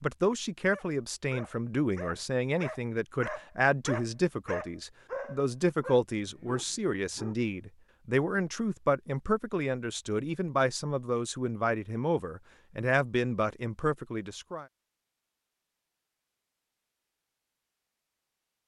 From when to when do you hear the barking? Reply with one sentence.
The barking can be heard from 0.7 to 7.4 s.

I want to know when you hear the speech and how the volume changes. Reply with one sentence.
The speech can be heard from 0.0 to 14.7 s, at a steady volume.